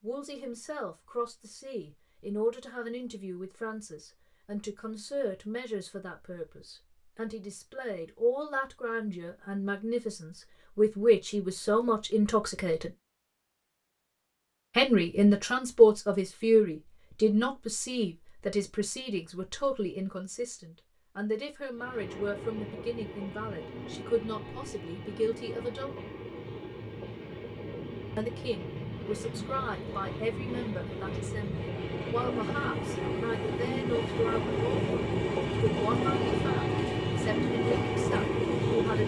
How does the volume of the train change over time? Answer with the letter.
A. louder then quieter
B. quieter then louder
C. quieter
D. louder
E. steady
D.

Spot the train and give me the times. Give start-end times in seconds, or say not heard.
21.7-39.0.